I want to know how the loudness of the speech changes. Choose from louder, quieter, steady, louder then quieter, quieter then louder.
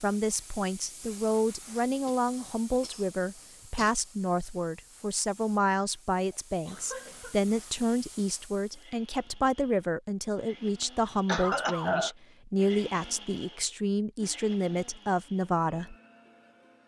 steady.